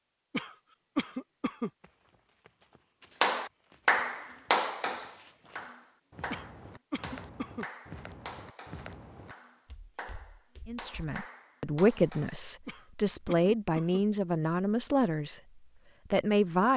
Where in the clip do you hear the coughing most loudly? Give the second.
1 s.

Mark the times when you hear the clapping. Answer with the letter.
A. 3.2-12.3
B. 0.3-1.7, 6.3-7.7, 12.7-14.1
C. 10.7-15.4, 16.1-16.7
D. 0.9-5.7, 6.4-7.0
A.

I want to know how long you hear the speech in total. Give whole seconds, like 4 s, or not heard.
5 s.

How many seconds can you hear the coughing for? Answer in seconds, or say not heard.
4 s.